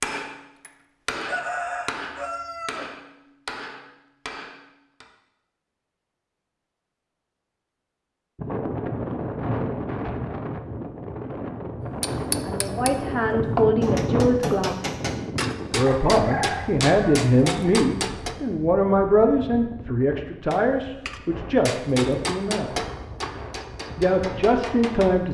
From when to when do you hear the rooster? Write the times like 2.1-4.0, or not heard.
1.1-2.9, 15.8-17.8.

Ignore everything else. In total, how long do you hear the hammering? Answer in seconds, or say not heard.
16 s.